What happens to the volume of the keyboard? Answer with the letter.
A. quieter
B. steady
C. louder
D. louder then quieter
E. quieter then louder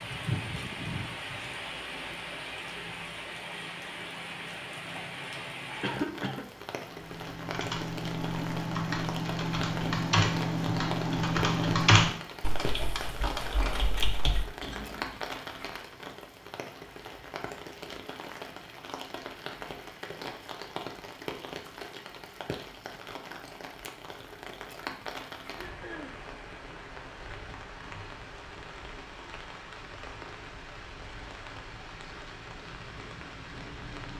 D.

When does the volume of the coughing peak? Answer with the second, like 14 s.
6 s.